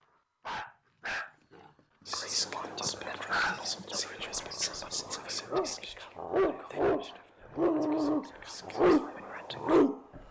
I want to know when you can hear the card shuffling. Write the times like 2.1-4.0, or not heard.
not heard.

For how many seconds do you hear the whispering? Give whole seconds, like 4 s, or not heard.
8 s.